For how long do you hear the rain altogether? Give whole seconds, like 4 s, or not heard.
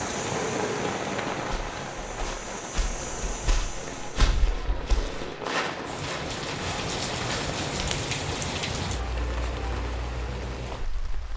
11 s.